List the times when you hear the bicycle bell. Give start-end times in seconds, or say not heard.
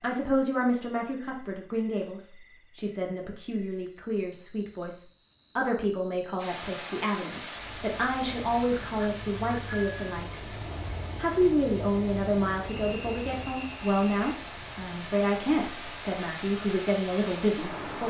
8.7-10.2.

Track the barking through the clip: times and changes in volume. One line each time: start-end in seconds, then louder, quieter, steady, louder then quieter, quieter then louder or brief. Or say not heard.
not heard.